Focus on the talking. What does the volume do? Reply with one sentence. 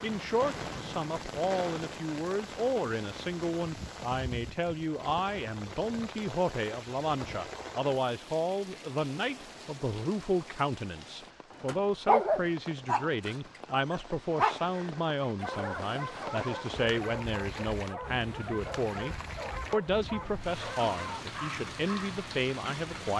The loudness of the talking stays about the same.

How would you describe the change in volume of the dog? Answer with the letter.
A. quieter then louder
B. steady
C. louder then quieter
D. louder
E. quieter
E.